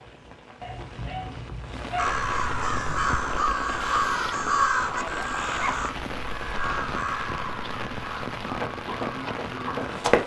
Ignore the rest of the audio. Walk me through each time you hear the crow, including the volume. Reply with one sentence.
You can hear the crow from 1.9 to 10.0 s, getting quieter.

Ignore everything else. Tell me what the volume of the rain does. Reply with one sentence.
The loudness of the rain goes up.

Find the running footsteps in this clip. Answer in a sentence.
The running footsteps can be heard from 8.5 to 10.2 s.